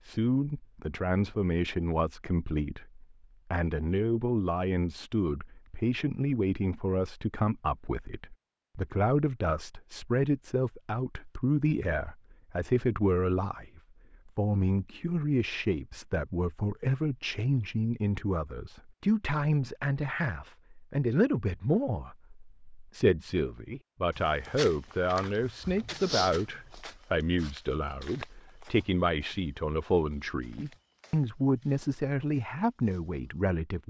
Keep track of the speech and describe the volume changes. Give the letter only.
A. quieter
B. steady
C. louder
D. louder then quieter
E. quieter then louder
B.